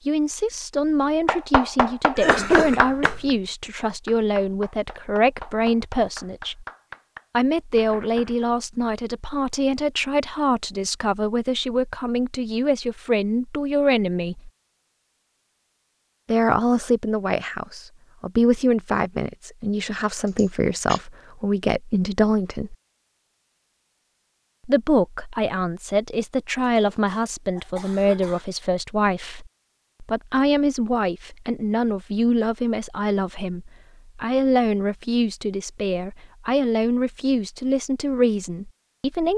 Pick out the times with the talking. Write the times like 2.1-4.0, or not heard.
0.1-6.7, 7.3-14.5, 16.2-22.8, 24.6-39.3.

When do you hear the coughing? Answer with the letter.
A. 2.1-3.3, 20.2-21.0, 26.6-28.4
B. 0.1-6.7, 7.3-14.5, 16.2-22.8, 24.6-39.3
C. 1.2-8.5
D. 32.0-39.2
A.